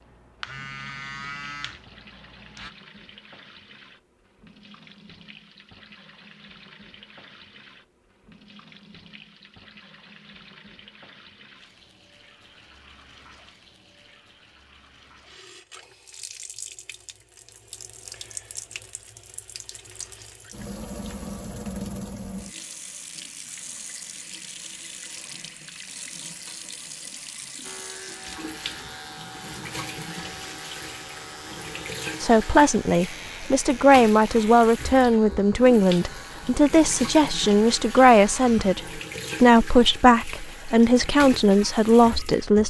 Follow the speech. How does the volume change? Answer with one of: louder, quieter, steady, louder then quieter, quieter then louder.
steady.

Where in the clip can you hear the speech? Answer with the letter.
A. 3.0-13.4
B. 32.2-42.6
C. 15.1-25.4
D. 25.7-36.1
B.